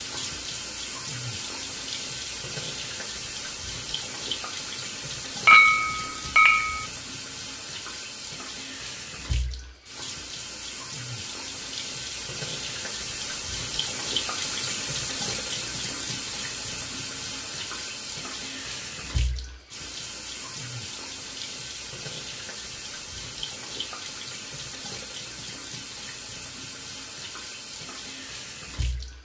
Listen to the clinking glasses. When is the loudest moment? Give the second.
6 s.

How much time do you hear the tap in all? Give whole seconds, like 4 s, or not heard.
29 s.